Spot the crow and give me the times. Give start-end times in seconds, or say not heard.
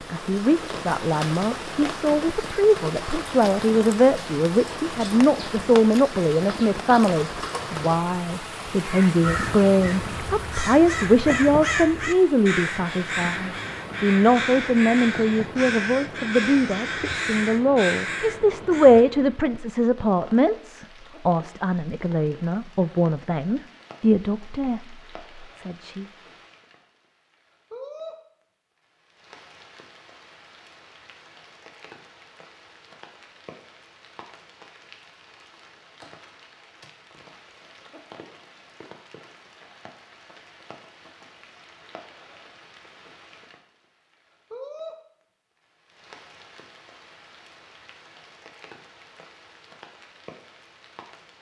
8.8-19.1.